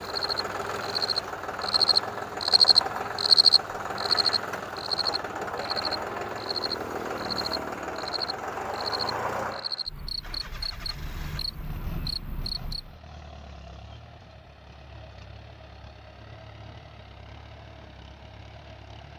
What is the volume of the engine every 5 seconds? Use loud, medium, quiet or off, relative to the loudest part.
loud, loud, quiet, quiet.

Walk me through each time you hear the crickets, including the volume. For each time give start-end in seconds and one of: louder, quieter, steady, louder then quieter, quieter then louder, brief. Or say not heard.
0.0-12.9 quieter.